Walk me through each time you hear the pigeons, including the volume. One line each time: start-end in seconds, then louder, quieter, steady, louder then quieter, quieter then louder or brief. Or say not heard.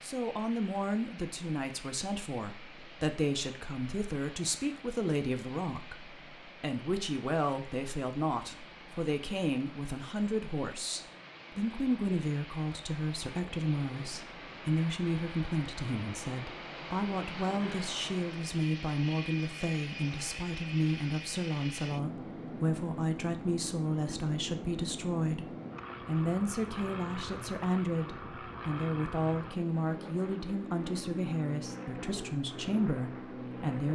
not heard.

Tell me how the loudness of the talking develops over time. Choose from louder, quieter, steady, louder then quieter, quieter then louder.
steady.